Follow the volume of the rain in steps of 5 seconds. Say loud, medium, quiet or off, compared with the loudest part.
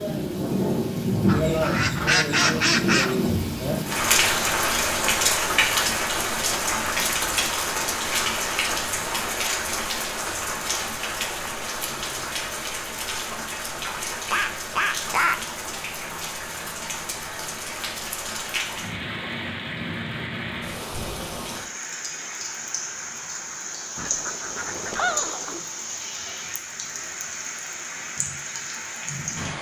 loud, loud, medium, medium, medium, medium.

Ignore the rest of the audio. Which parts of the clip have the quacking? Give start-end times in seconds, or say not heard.
1.2-3.1, 13.8-15.4, 23.9-25.6.